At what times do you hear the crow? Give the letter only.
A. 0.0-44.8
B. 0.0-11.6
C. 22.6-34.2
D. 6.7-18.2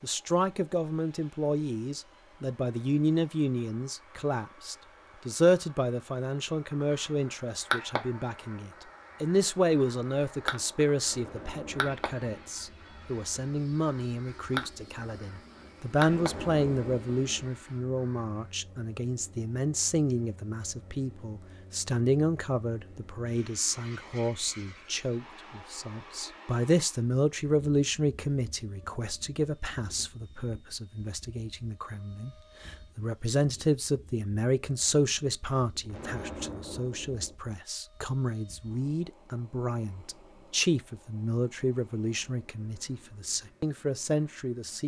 D.